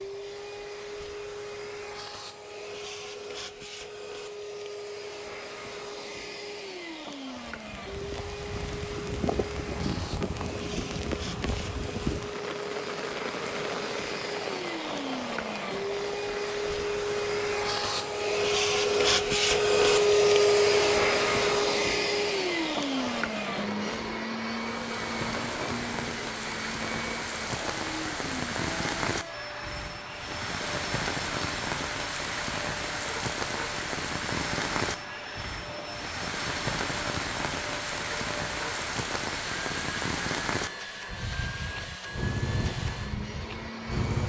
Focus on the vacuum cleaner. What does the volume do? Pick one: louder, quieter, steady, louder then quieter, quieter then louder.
louder then quieter.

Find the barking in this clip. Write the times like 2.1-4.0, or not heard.
not heard.